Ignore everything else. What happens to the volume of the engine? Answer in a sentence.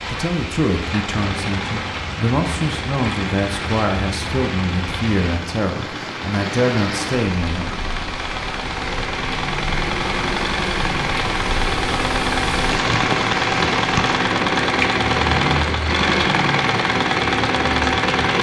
The loudness of the engine goes up.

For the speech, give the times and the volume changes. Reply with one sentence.
The speech can be heard from 0.1 to 7.8 s, at a steady volume.